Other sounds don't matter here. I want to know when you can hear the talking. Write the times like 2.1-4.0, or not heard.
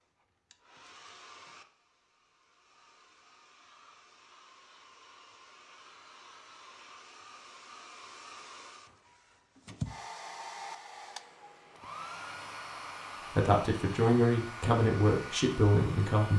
13.3-16.3.